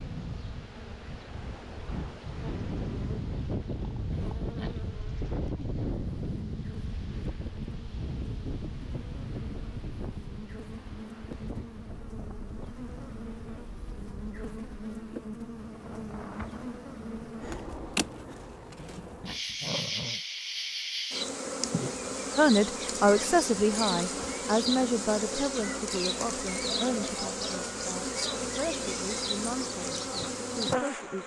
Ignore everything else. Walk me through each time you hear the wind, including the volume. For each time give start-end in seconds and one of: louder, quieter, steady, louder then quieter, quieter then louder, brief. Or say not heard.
0.0-18.0 quieter.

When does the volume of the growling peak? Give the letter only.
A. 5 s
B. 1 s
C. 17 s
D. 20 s
D.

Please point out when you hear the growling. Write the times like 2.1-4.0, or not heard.
4.1-4.9, 18.8-20.2.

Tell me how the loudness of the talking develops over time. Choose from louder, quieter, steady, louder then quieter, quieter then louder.
quieter.